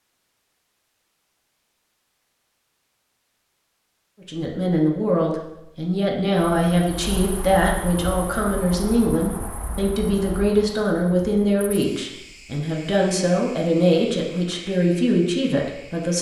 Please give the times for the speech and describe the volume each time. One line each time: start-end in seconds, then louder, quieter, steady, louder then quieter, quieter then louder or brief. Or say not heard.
4.2-16.1 steady.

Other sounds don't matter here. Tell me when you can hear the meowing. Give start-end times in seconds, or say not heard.
not heard.